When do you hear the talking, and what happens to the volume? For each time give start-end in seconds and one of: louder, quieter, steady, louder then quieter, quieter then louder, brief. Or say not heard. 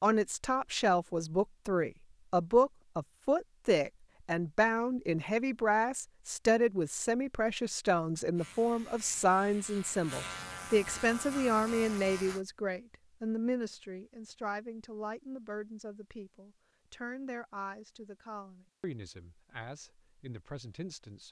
0.0-21.2 quieter.